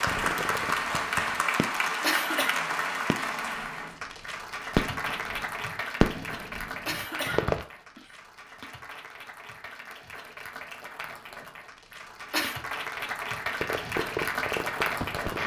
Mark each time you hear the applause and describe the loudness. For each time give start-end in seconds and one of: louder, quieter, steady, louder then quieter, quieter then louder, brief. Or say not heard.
0.0-15.4 quieter then louder.